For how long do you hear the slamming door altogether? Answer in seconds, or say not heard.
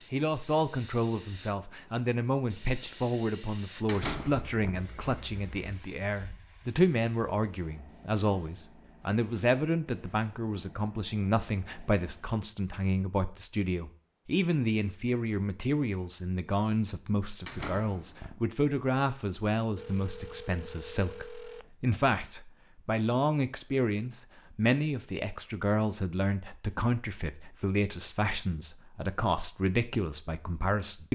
2 s.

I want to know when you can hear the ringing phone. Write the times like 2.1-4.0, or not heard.
19.8-21.7.